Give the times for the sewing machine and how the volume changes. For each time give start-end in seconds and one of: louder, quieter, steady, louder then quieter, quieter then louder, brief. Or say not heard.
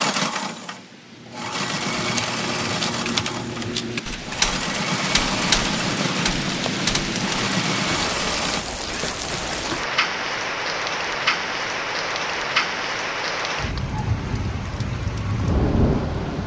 0.0-8.7 steady.